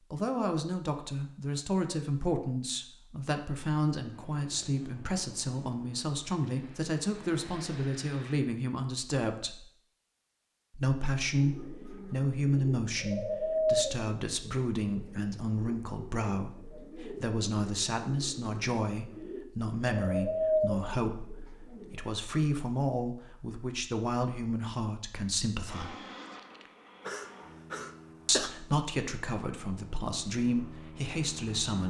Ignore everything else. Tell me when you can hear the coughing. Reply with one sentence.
The coughing can be heard from 27.0 to 28.5 s.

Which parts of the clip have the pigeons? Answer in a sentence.
You can hear the pigeons from 11.2 to 22.2 s.